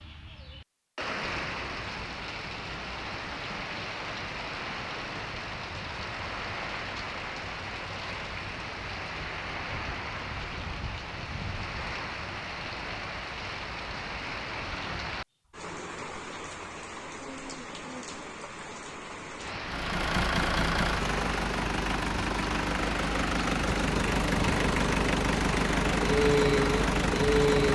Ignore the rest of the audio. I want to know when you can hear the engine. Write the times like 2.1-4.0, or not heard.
19.6-27.7.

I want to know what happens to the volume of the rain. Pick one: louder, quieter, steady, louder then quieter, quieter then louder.
steady.